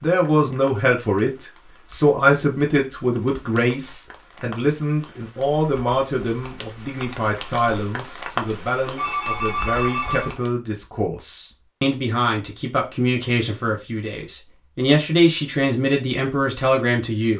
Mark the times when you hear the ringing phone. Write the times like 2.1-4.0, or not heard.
8.9-10.3.